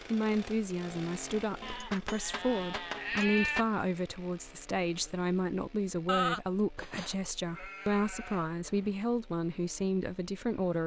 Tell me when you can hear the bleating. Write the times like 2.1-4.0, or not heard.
1.6-3.6, 6.0-8.9.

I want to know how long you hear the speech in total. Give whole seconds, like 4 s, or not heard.
11 s.